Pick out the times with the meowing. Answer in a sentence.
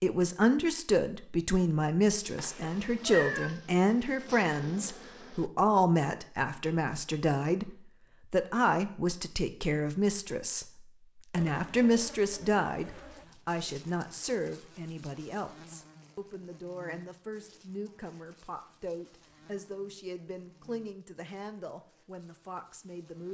You can hear the meowing from 2.4 to 3.5 s.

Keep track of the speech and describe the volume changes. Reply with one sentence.
The loudness of the speech goes down.